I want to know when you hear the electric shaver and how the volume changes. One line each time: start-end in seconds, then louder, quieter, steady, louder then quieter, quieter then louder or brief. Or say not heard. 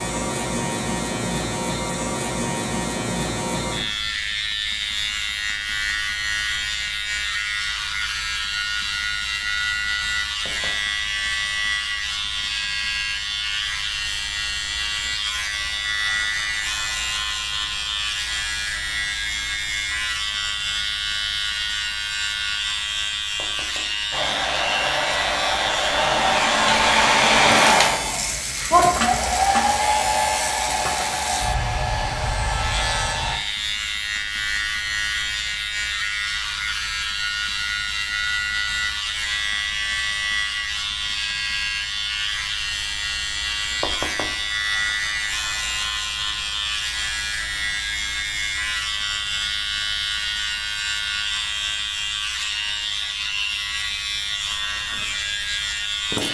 0.0-56.2 steady.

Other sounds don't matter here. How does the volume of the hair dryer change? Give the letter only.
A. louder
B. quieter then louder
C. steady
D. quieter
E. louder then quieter
E.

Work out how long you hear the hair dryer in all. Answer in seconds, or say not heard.
9 s.